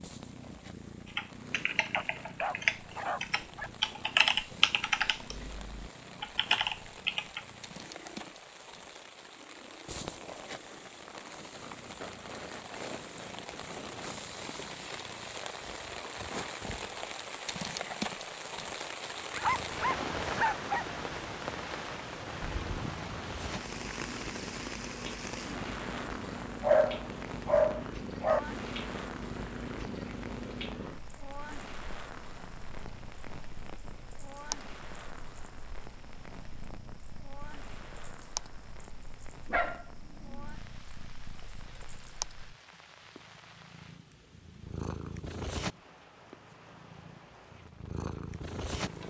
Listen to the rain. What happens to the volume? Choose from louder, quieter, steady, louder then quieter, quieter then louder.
louder then quieter.